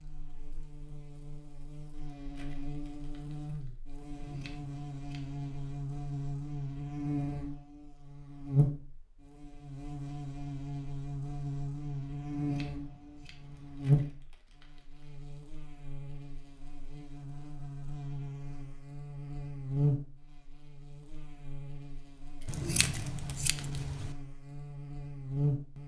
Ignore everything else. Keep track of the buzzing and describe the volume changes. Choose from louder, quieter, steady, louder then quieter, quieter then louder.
louder then quieter.